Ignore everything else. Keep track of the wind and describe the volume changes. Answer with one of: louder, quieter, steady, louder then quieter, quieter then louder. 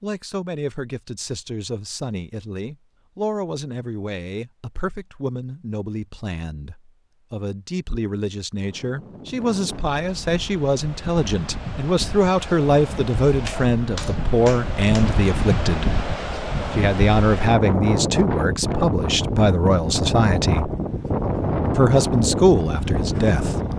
louder.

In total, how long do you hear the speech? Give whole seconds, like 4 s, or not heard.
22 s.